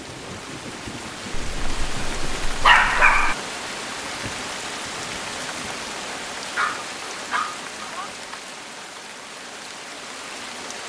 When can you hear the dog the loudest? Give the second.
3 s.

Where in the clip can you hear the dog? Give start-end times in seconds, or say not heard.
1.3-3.4, 6.5-8.1.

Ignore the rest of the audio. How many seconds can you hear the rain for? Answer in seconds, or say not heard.
11 s.